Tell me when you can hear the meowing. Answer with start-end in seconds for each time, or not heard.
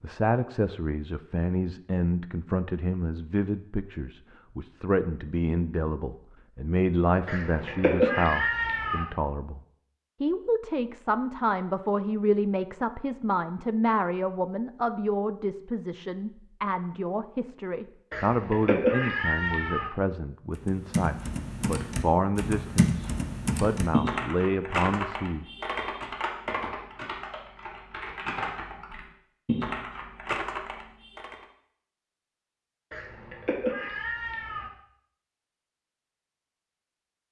7.2-9.1, 18.1-19.9, 32.9-34.7.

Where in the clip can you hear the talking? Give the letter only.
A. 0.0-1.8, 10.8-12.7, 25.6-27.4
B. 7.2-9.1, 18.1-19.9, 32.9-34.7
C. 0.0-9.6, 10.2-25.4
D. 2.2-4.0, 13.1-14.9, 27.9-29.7
C.